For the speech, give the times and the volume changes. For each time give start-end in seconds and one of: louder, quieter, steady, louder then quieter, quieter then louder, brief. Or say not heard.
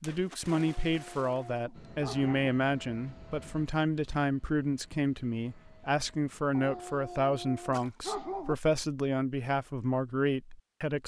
0.0-11.0 steady.